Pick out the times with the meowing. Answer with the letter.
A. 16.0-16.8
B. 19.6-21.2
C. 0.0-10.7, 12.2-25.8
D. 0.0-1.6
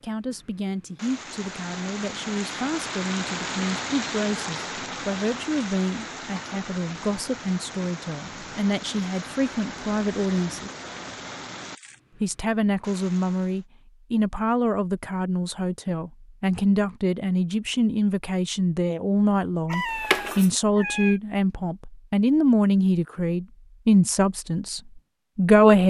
B.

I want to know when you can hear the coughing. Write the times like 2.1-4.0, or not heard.
19.7-20.5.